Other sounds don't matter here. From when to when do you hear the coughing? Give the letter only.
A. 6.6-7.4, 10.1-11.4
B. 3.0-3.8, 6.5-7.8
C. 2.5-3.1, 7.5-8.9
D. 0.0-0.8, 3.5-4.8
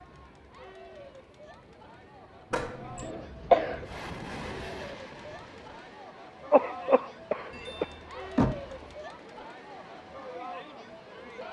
B.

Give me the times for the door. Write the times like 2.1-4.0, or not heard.
2.5-3.1, 7.5-8.9.